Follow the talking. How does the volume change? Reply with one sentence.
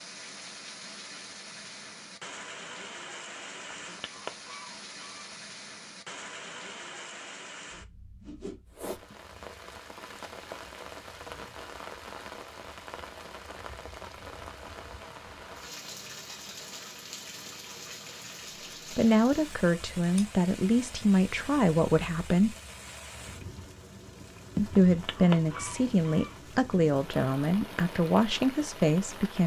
The loudness of the talking stays about the same.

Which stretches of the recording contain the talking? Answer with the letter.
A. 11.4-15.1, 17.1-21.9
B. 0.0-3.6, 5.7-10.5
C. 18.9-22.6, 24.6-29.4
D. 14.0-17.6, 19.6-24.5
C.